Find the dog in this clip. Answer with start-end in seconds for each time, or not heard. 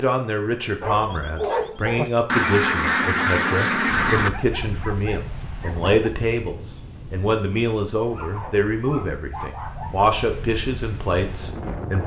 0.8-2.1, 4.2-6.1, 8.1-9.9.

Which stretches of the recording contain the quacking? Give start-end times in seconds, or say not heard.
2.2-4.3.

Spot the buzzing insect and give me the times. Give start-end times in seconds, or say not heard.
not heard.